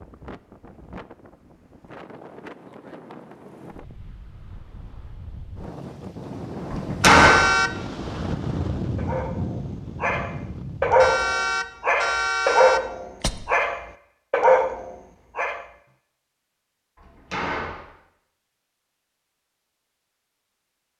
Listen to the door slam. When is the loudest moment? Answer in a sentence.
The volume of the door slam peaks at 7 seconds.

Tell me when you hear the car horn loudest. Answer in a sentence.
The loudest moment of the car horn is at 7 seconds.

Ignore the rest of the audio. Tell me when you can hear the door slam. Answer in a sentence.
You can hear the door slam from 6.7 to 7.5 s and from 16.9 to 17.9 s.